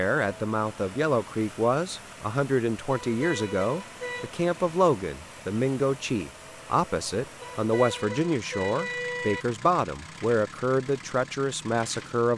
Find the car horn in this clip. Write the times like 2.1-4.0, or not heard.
2.9-4.3, 7.4-9.4.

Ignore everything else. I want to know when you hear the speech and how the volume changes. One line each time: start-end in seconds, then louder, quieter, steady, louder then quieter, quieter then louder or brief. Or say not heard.
0.0-12.3 steady.